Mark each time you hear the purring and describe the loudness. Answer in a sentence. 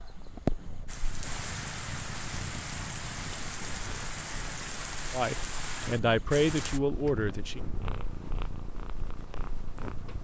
The purring can be heard from 0.0 to 10.1 s, getting quieter then louder.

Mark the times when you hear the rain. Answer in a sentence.
The rain can be heard from 0.0 to 6.8 s.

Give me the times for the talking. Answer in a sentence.
You can hear the talking from 5.1 to 7.6 s.